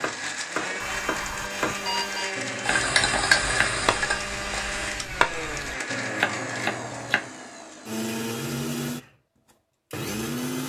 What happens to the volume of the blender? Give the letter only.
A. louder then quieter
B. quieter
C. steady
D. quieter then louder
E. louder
C.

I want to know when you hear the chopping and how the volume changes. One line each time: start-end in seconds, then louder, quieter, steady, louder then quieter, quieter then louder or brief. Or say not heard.
0.0-7.3 quieter then louder.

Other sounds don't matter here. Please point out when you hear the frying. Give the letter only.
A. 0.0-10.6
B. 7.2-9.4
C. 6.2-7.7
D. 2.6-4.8
D.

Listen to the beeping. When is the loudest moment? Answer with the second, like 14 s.
2 s.